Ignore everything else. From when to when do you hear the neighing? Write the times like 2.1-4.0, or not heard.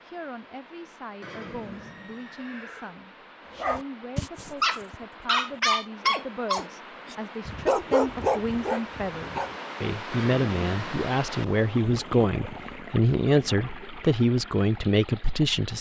1.2-3.0, 10.1-11.0.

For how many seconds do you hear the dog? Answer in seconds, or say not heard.
6 s.